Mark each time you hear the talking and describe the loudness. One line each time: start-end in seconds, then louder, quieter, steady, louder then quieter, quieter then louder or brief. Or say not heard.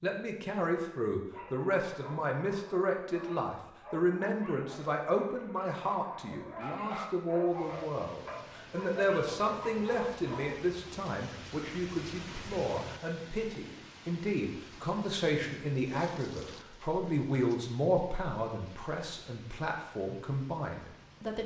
0.0-21.4 steady.